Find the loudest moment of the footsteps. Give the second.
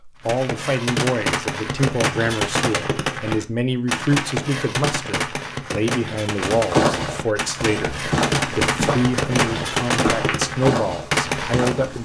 7 s.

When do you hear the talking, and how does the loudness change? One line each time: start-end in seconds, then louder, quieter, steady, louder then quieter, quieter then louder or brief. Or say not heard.
0.1-11.9 steady.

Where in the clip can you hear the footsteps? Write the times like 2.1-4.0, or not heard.
6.3-11.9.